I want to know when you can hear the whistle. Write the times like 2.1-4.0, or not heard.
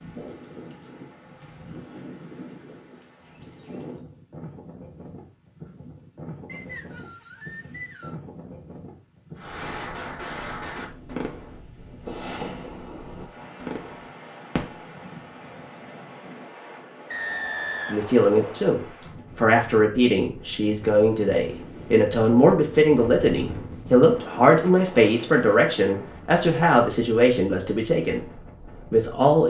6.5-8.2, 17.1-18.6.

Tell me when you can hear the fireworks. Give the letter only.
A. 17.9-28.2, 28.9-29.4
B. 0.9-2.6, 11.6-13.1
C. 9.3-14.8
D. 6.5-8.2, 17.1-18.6
C.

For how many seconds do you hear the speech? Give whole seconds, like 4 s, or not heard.
11 s.